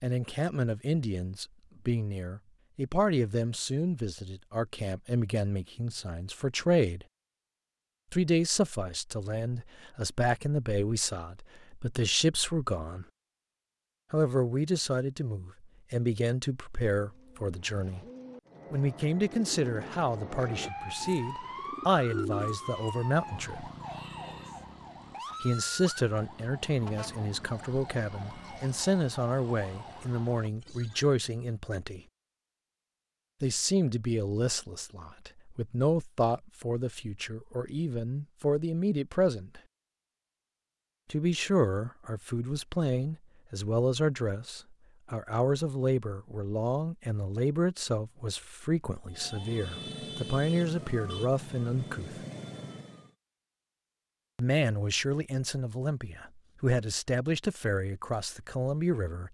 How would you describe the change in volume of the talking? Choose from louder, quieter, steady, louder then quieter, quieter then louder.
steady.